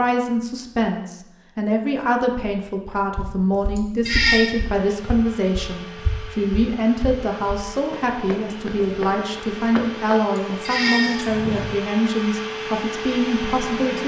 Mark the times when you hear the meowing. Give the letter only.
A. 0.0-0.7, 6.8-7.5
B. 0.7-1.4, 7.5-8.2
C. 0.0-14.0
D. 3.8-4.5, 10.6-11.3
D.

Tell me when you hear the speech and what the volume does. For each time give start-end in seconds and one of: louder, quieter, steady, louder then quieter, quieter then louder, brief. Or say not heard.
0.0-14.0 steady.